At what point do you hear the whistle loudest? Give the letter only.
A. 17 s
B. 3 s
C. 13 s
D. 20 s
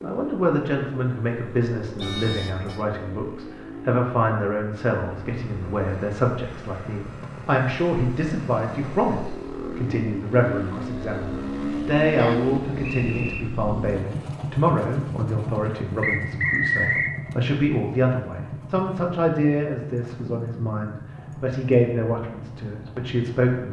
A.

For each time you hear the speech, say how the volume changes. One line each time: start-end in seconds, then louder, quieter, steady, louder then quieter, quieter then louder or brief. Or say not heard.
0.0-23.6 steady.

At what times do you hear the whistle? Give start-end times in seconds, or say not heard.
1.9-2.4, 12.2-13.4, 16.0-17.1.